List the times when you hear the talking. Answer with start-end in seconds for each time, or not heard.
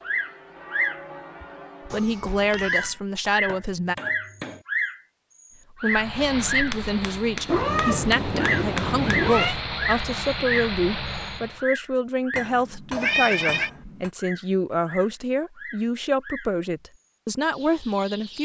1.9-4.0, 5.8-18.4.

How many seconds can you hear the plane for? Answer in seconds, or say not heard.
6 s.